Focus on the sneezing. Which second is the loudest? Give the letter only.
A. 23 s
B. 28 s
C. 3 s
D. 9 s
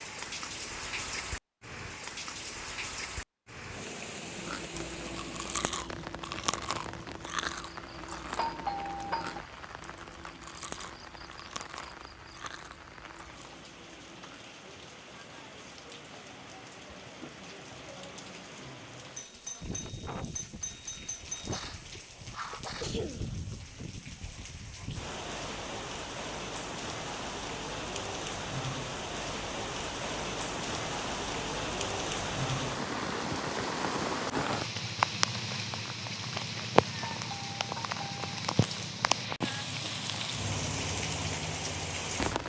A.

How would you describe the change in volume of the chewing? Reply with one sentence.
The loudness of the chewing goes down.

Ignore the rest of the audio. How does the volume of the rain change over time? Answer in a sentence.
The loudness of the rain goes down, then up.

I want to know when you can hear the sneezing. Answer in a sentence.
You can hear the sneezing from 21.5 to 23.6 s.